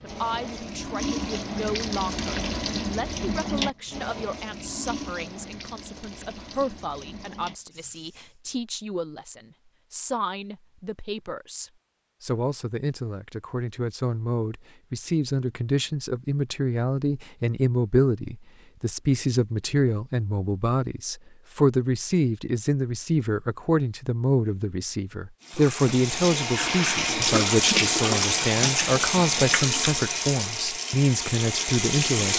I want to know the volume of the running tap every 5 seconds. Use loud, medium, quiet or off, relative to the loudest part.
medium, quiet, off, off, off, loud, loud.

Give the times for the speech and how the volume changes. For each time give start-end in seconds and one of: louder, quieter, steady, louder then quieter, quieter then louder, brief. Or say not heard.
0.0-32.3 louder.